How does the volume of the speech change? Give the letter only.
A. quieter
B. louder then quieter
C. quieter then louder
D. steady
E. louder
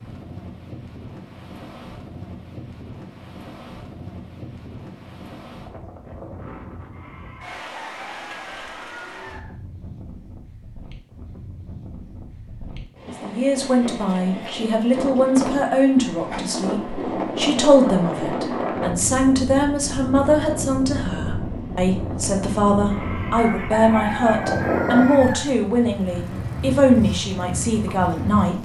D.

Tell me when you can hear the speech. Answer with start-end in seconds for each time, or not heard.
13.2-28.5.